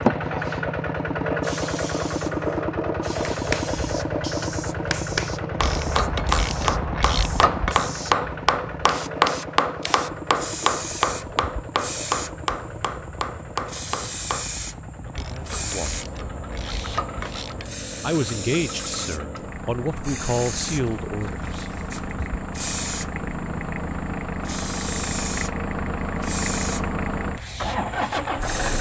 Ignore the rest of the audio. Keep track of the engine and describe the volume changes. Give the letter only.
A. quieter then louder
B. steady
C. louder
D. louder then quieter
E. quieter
A.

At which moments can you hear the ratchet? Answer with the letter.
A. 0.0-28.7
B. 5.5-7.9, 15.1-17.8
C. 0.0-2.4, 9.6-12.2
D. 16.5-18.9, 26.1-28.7
B.